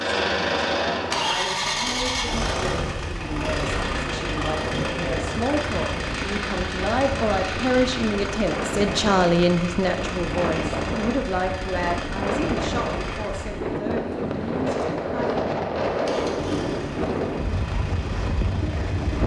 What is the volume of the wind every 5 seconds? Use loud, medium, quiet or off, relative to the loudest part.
medium, medium, loud, loud.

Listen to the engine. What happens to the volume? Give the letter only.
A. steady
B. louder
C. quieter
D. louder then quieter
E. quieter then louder
C.